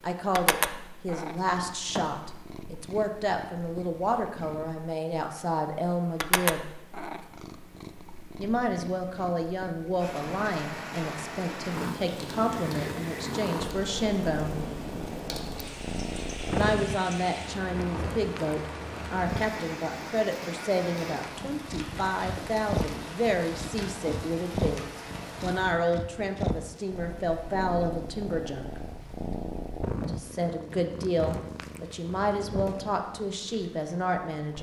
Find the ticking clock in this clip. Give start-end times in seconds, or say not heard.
not heard.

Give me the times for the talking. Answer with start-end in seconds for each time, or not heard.
0.0-6.7, 8.3-14.6, 16.5-28.8, 30.0-34.5.